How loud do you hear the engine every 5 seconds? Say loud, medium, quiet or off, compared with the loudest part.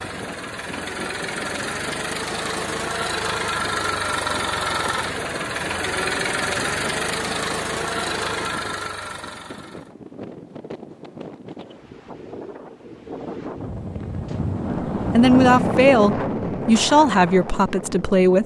loud, loud, off, off.